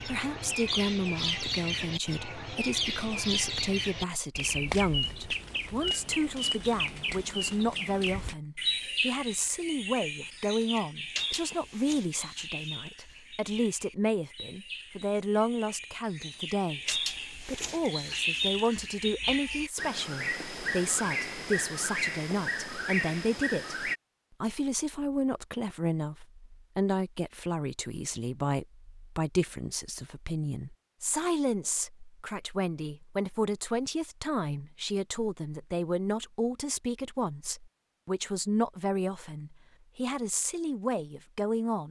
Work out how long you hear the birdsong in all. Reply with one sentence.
You can hear the birdsong for 24 seconds altogether.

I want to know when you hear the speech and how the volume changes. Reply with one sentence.
The speech can be heard from 0.1 to 41.8 s, at a steady volume.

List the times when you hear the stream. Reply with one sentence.
You can't hear the stream here.